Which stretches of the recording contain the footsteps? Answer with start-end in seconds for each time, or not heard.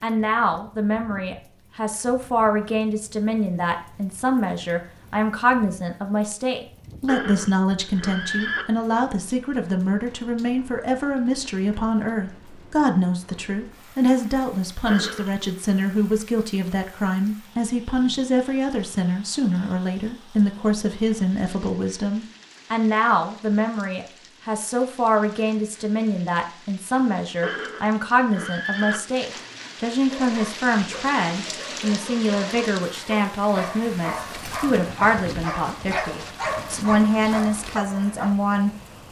not heard.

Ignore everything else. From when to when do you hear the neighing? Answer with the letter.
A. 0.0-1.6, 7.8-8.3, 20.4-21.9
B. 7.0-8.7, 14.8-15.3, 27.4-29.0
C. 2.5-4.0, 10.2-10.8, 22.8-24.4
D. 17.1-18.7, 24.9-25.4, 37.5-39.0
B.